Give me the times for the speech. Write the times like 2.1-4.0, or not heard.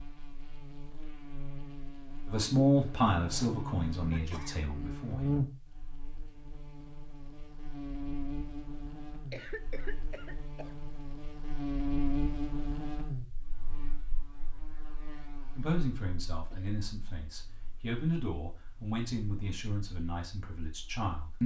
2.2-5.4, 15.6-21.4.